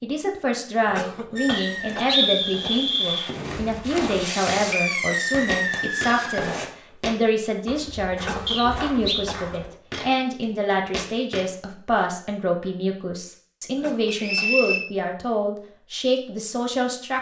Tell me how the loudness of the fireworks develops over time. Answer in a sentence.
The volume of the fireworks goes up.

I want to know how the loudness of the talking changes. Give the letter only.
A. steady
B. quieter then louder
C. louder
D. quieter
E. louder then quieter
A.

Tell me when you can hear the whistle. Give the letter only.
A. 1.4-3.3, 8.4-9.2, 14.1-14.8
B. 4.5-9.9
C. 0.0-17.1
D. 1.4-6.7
A.